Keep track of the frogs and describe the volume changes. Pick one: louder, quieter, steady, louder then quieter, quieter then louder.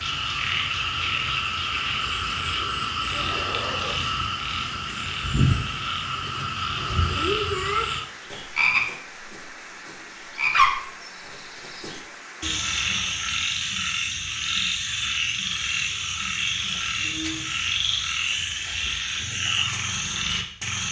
steady.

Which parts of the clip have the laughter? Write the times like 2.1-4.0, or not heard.
3.0-4.0.